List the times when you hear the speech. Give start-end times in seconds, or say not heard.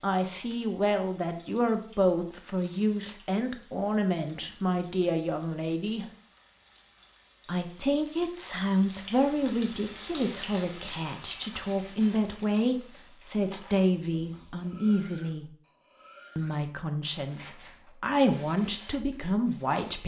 0.0-6.0, 7.5-15.5, 16.4-20.0.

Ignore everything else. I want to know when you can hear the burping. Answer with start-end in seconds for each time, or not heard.
not heard.